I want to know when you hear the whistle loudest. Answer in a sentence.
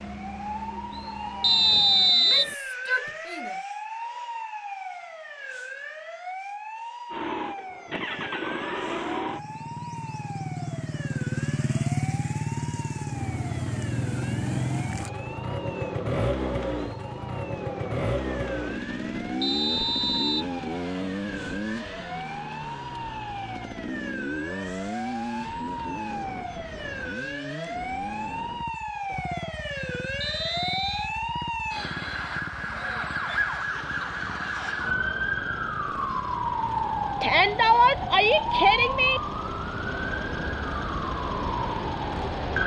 The volume of the whistle peaks at 2 seconds.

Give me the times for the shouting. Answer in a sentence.
You can hear the shouting from 2.1 to 3.6 s and from 37.2 to 39.2 s.